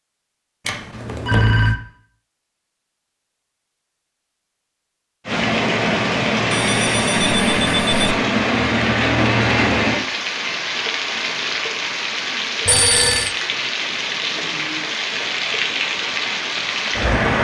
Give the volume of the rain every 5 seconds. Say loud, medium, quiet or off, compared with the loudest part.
off, loud, medium, loud.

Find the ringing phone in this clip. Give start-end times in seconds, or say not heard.
0.7-1.8, 6.5-8.2, 12.7-13.3.